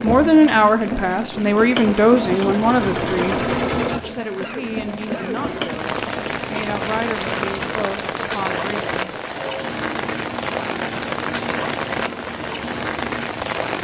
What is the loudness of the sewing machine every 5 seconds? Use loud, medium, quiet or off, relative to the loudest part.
loud, medium, medium.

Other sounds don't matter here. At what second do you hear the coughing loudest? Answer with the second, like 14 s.
5 s.